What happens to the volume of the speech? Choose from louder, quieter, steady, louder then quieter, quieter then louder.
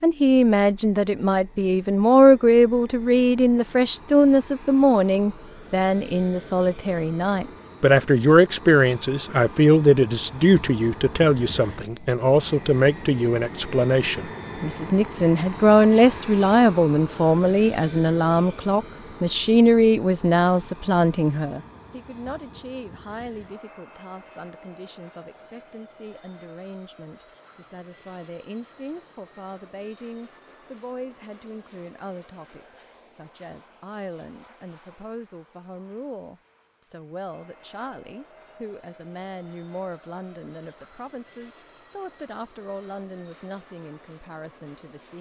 quieter.